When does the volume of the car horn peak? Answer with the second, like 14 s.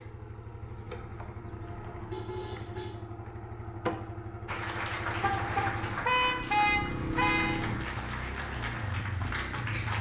7 s.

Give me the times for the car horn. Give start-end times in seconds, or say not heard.
0.6-3.0, 5.2-7.6.